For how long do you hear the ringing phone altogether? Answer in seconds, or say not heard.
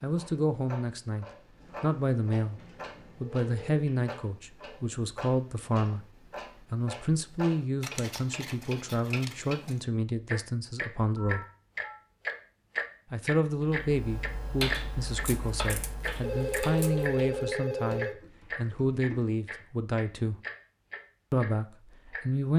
5 s.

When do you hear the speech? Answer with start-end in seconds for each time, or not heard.
0.0-11.4, 13.1-20.4, 21.3-22.5.